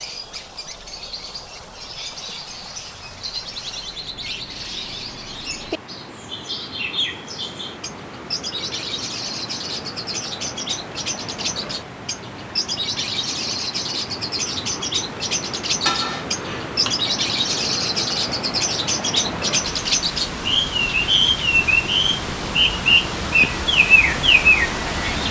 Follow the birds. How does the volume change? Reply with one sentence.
The volume of the birds goes up.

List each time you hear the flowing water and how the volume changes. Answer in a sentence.
You can hear the flowing water from 0.0 to 25.2 s, getting louder.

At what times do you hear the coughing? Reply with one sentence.
You can hear the coughing from 15.8 to 17.1 s.